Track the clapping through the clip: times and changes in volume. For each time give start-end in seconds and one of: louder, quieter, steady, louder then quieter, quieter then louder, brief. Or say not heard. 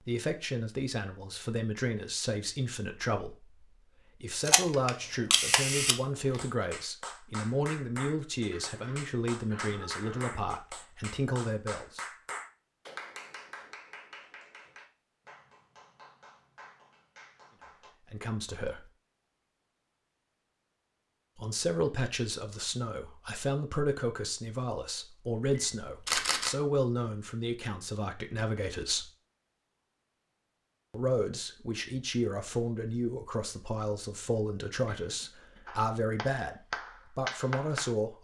6.3-17.9 quieter
35.6-38.0 brief.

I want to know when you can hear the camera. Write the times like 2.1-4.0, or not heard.
4.5-6.0, 25.4-26.6.